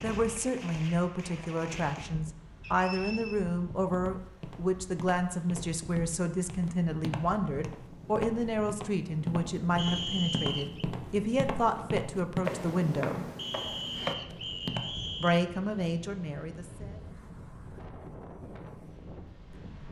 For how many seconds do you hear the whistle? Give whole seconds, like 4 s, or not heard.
4 s.